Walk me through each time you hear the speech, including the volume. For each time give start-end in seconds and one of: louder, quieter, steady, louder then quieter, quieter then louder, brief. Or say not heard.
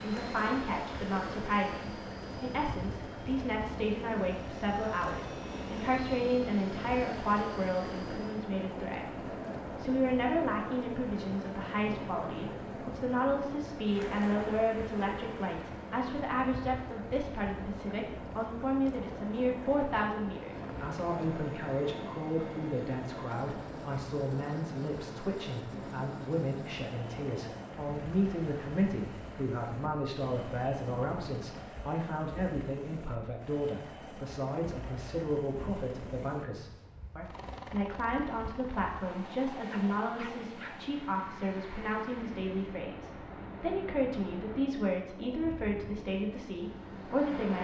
0.0-47.5 steady.